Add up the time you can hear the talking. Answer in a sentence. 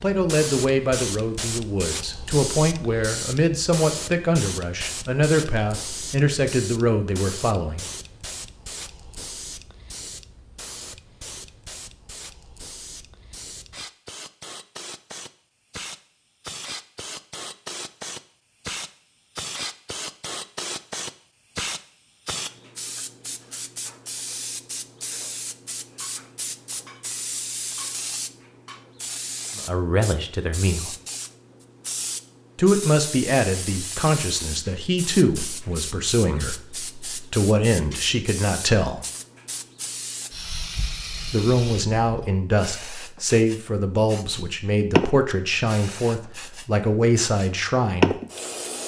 You can hear the talking for 23 seconds altogether.